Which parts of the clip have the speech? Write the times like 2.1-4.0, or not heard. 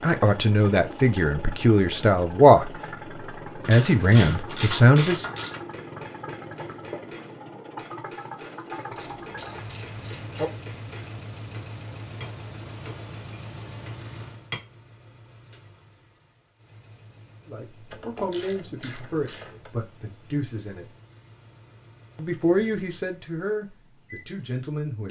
0.0-2.7, 3.6-5.2, 17.4-20.9, 22.1-25.0.